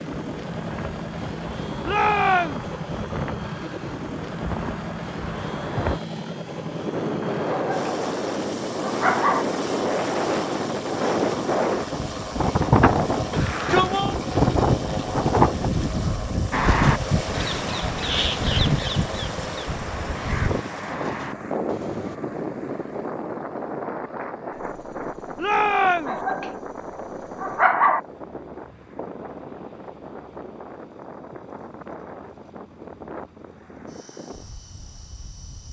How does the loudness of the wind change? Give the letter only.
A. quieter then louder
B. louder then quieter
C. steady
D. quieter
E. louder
B.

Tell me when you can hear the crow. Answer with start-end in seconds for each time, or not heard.
16.5-22.2.